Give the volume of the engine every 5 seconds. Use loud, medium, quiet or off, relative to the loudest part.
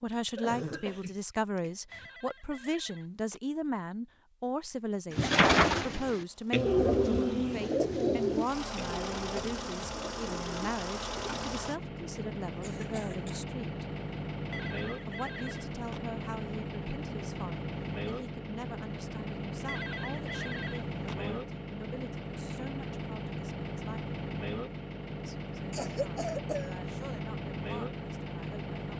off, loud, loud, loud, loud, loud.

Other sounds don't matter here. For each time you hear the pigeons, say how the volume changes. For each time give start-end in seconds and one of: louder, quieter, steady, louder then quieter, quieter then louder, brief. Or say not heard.
5.1-11.5 quieter.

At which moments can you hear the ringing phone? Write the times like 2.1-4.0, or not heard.
1.9-3.4, 14.5-16.0, 19.6-21.1.